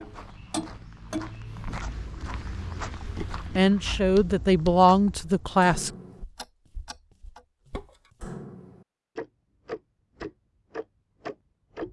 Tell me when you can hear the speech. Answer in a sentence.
You can hear the speech from 3.5 to 5.9 s.